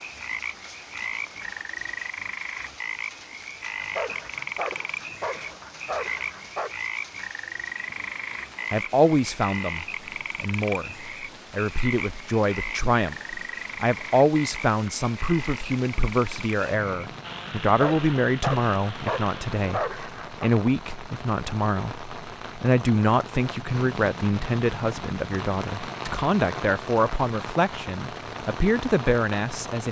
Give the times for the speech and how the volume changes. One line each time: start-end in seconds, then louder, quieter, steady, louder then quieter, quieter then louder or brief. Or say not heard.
8.7-29.8 steady.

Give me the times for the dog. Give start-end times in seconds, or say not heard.
3.8-6.8, 17.6-20.5.